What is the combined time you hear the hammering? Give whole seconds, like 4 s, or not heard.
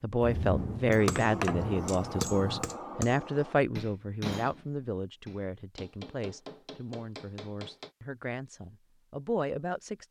7 s.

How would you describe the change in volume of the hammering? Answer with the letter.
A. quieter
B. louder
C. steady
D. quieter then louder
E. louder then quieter
A.